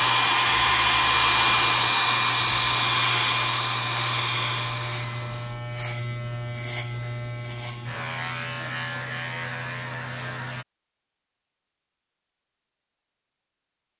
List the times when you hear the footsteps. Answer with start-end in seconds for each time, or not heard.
not heard.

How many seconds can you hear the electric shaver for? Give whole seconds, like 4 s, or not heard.
11 s.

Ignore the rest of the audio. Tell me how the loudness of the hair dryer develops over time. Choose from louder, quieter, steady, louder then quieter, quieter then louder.
quieter.